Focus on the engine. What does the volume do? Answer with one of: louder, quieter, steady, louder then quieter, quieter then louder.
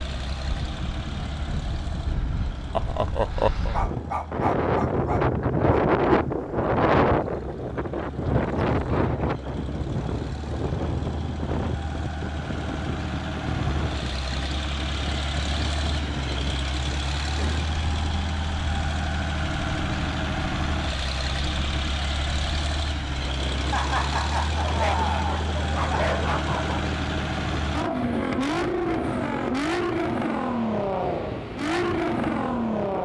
louder.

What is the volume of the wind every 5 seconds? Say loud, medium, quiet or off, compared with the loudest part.
medium, loud, medium, quiet, quiet, quiet, quiet.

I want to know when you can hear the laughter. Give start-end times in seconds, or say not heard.
2.8-3.8, 23.7-26.1.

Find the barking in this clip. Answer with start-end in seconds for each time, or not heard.
3.2-5.8, 24.6-26.9.